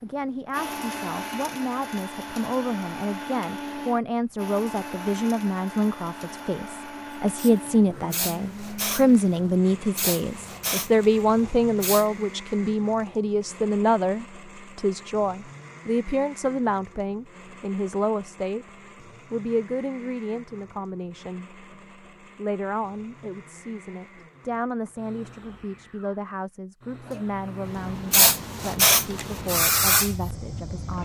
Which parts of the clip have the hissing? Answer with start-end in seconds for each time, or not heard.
7.3-12.1, 27.1-31.0.